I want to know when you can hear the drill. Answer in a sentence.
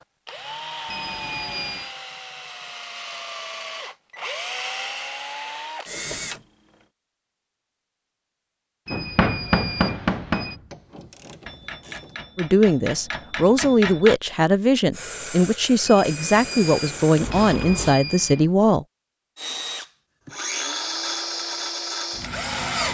You can hear the drill from 0.0 to 6.8 s and from 19.4 to 22.8 s.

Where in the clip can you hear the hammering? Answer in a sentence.
The hammering can be heard from 8.9 to 14.2 s.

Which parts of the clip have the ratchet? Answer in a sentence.
The ratchet can be heard from 10.7 to 12.2 s.